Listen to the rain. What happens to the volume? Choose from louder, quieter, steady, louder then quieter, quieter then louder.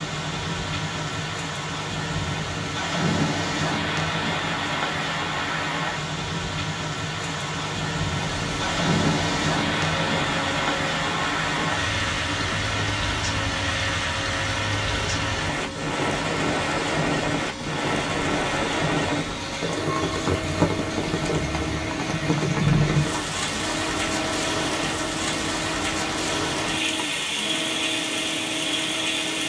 steady.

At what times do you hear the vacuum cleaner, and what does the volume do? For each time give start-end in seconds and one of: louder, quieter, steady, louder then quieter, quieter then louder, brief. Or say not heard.
8.1-29.4 steady.